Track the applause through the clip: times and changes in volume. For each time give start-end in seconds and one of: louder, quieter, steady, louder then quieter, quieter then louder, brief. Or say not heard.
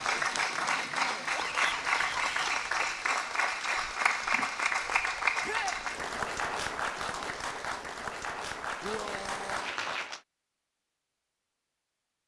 0.0-10.2 quieter.